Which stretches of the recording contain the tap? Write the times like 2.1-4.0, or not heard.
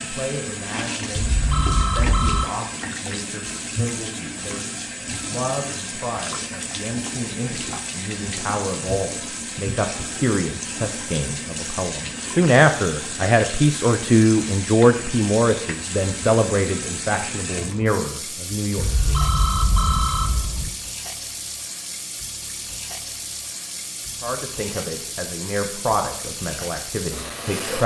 0.0-27.8.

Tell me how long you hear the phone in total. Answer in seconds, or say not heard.
3 s.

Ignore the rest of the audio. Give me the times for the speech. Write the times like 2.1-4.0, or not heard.
0.0-19.1, 24.2-27.8.